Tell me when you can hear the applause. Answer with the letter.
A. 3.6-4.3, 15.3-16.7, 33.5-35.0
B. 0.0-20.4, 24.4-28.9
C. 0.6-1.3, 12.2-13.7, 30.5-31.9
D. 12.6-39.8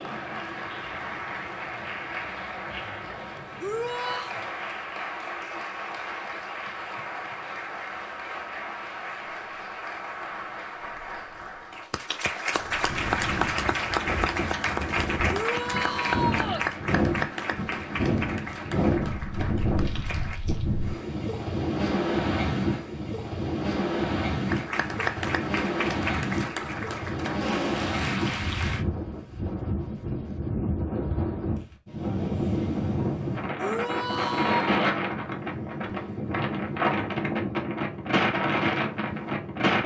B.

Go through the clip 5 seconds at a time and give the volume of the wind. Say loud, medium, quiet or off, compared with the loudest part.
off, off, medium, loud, loud, loud, loud, loud.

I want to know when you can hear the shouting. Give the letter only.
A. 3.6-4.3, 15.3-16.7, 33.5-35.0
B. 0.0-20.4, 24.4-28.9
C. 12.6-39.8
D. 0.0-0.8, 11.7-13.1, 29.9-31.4
A.